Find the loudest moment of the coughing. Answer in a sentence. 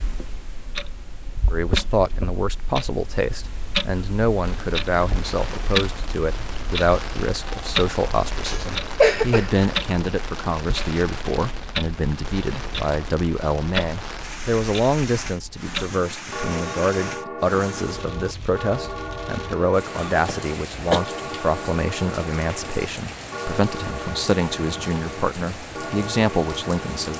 The volume of the coughing peaks at 9 seconds.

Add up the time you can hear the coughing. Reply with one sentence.
The coughing can be heard for 2 seconds in total.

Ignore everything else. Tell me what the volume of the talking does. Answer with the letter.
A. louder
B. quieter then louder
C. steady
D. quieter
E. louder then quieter
C.